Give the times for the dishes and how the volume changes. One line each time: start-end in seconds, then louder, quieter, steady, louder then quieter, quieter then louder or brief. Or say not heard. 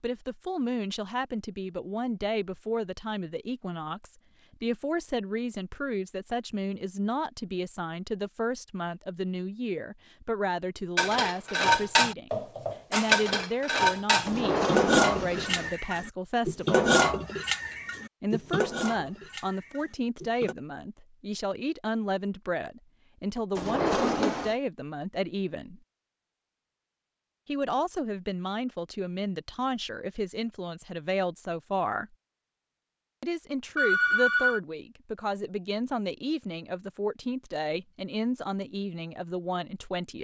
10.9-20.6 quieter.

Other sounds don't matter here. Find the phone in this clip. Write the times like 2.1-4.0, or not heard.
33.8-34.6.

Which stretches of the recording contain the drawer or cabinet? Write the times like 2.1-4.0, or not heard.
14.2-15.7, 23.6-24.6.